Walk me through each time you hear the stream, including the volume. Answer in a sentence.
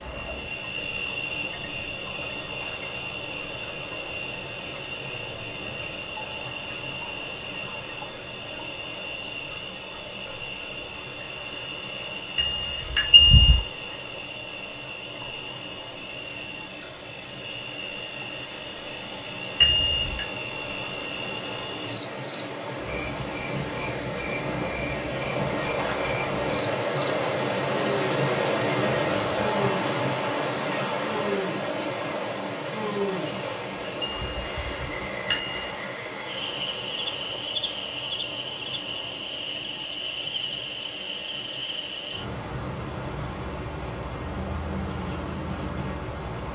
The stream can be heard from 0.0 to 46.5 s, getting louder then quieter.